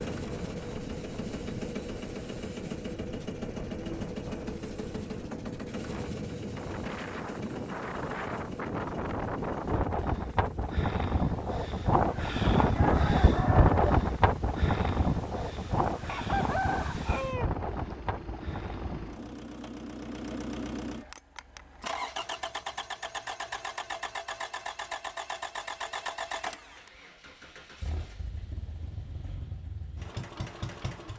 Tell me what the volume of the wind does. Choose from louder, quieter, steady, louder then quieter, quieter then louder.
louder then quieter.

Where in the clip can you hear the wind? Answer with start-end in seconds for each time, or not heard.
0.0-19.4.